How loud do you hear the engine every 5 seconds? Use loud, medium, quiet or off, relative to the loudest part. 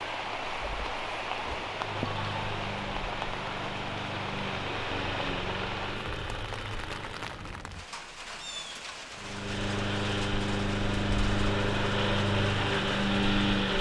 medium, medium, loud.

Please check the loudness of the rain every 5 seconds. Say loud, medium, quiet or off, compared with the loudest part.
loud, medium, medium.